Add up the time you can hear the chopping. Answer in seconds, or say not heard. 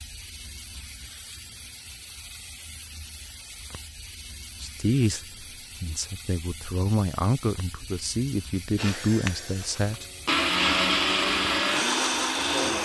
not heard.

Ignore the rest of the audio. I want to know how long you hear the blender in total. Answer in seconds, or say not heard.
4 s.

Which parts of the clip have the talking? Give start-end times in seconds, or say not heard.
4.6-10.1.